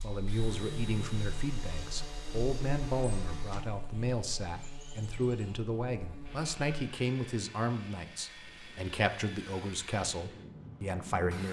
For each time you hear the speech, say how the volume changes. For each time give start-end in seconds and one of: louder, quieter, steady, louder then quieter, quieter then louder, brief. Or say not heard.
0.0-11.4 steady.